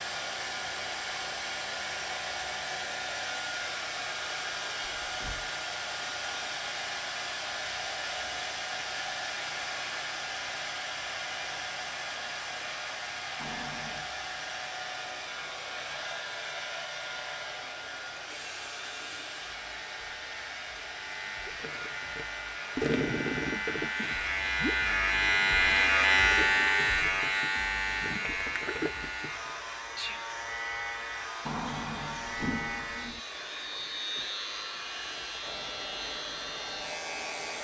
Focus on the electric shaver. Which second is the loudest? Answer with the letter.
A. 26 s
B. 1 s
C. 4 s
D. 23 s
A.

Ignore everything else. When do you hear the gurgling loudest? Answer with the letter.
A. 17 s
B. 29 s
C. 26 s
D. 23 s
D.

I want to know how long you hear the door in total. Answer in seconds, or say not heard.
3 s.